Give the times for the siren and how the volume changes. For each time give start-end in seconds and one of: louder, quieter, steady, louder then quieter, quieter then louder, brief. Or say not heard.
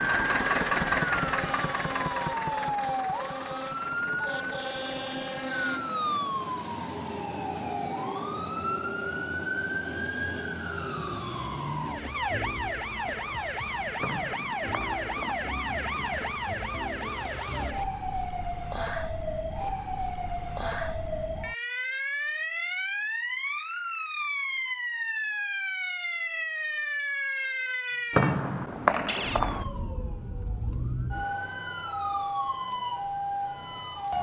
0.1-34.1 steady.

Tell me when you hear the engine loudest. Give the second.
1 s.